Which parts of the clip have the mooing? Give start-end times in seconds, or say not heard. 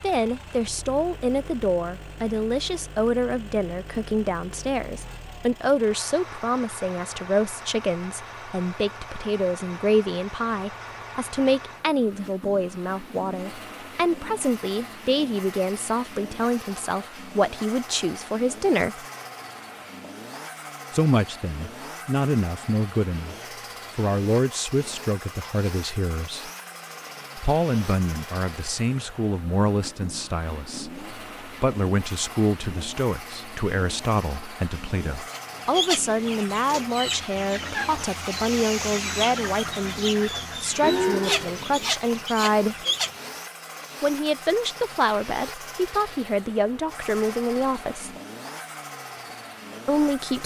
40.8-42.2.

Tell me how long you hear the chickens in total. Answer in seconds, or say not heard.
8 s.